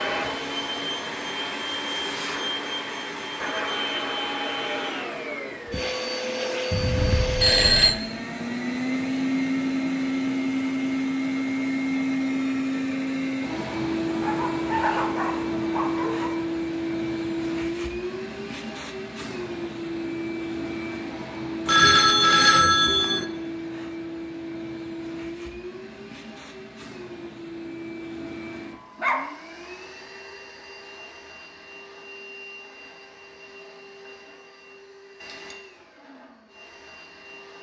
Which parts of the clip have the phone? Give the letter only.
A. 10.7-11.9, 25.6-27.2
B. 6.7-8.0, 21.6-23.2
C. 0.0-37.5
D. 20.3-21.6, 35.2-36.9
B.